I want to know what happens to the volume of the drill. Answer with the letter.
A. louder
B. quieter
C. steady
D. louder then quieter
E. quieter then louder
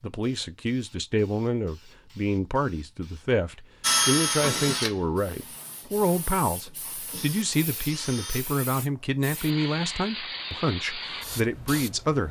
E.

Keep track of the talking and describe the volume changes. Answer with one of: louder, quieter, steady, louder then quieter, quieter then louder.
steady.